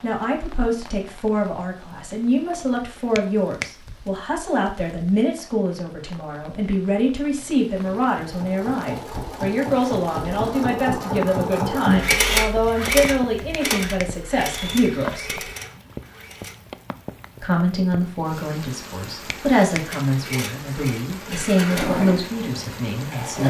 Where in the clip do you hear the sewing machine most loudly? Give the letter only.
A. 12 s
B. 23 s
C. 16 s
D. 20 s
A.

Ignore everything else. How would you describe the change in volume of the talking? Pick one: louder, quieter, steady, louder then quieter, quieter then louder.
steady.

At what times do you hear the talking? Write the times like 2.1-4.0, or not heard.
0.0-15.4, 17.4-23.4.